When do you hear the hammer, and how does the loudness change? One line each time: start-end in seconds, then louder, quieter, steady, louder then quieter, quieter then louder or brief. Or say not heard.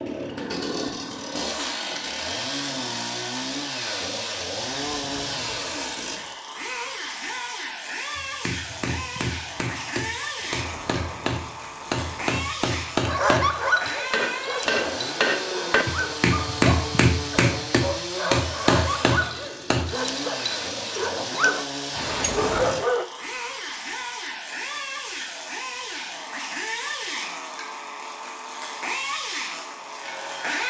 8.2-19.9 louder.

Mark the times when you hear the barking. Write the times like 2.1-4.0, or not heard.
13.1-23.1.